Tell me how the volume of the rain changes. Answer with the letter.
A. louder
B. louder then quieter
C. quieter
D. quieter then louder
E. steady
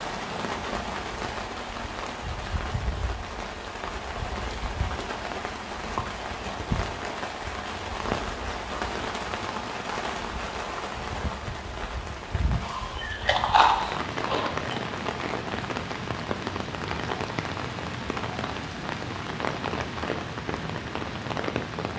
E.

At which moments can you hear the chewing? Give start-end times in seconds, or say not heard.
12.6-14.8.